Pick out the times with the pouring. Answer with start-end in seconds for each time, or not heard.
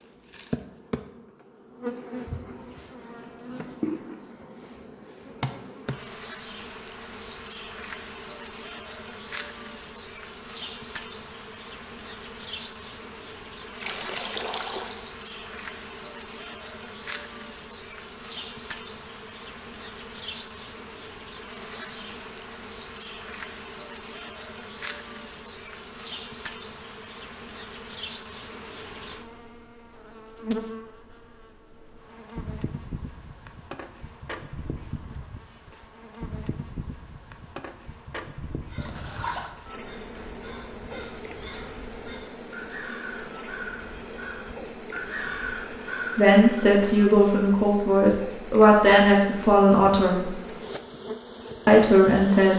13.8-15.0, 38.8-39.5.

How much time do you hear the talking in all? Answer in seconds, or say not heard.
5 s.